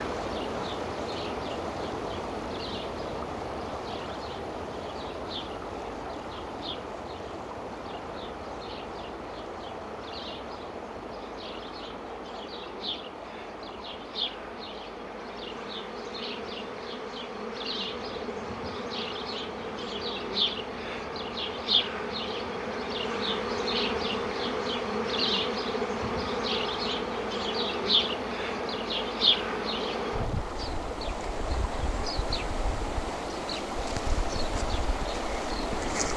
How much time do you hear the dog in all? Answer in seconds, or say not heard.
not heard.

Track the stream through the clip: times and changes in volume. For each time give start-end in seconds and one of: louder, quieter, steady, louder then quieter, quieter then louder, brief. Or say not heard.
0.0-36.1 quieter then louder.